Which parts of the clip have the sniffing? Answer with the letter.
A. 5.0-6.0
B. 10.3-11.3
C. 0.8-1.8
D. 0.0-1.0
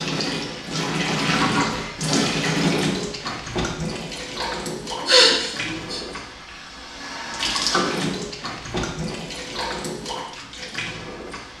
A.